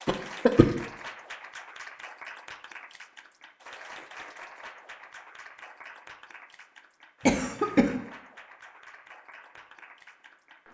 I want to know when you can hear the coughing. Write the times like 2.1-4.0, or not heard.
0.1-0.7, 7.2-8.0.